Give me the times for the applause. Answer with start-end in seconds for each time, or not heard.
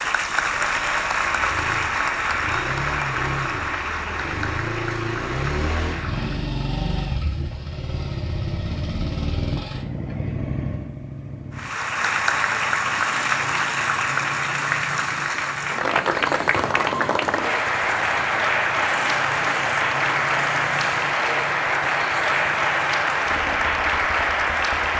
0.0-6.5, 11.5-24.9.